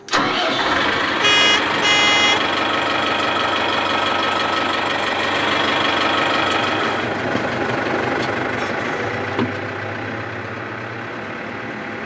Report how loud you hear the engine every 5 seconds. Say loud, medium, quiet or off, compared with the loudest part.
loud, loud, medium.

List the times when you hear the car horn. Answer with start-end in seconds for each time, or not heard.
1.2-2.5.